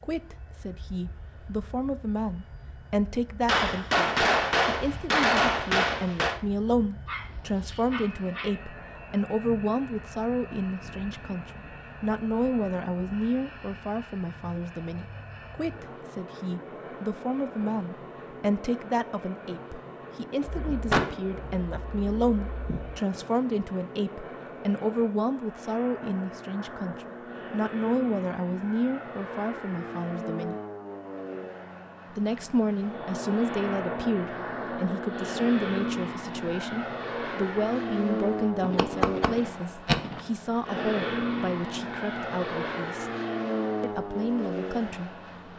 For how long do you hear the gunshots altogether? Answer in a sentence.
The gunshots can be heard for 7 seconds in total.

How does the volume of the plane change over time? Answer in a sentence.
The loudness of the plane goes up.